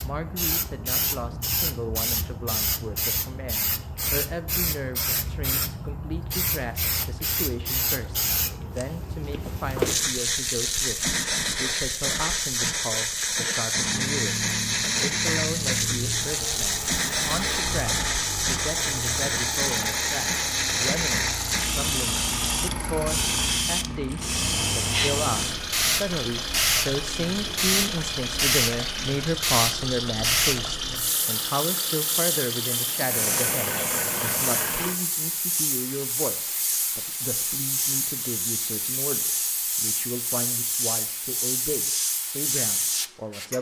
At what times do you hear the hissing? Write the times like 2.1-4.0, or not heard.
0.0-43.5.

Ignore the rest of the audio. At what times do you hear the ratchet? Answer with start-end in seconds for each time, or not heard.
not heard.